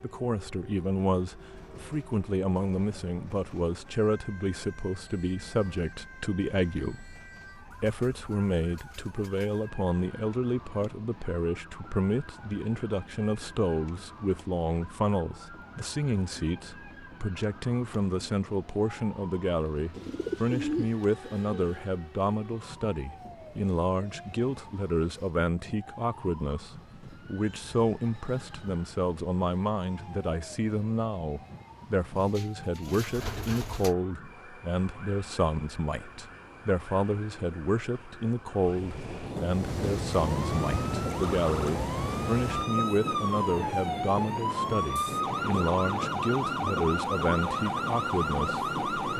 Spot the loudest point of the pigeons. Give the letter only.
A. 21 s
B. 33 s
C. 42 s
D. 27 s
A.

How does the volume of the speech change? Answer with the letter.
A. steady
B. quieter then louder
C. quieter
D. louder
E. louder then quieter
A.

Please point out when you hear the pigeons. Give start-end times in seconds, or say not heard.
19.9-21.9, 32.1-34.0.